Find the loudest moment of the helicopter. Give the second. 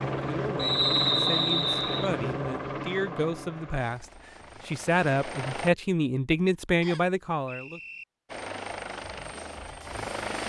1 s.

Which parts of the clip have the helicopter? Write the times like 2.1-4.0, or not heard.
0.0-5.7, 8.2-10.4.